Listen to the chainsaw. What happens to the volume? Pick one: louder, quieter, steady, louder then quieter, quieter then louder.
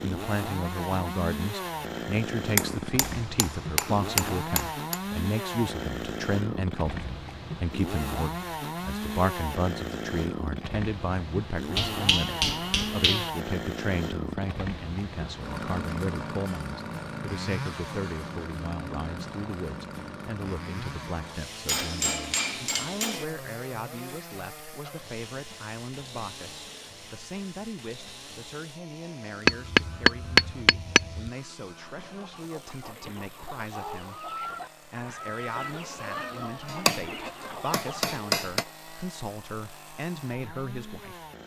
quieter.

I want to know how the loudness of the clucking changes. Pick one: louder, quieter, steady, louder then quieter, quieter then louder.
louder.